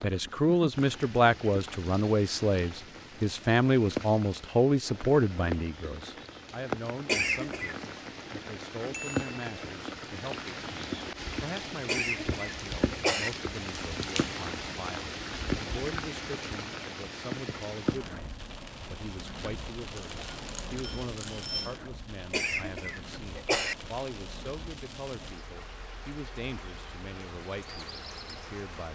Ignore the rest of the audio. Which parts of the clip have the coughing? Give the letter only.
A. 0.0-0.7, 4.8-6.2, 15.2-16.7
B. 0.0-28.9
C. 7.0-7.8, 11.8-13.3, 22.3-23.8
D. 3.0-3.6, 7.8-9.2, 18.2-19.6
C.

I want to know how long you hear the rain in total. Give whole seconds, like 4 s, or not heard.
29 s.